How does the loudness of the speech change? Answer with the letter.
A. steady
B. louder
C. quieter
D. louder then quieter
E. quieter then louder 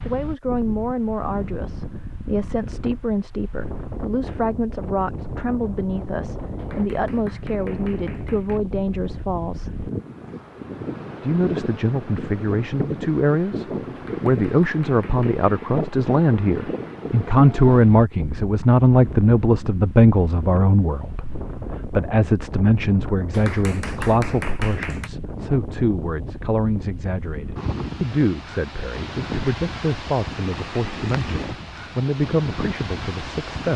D.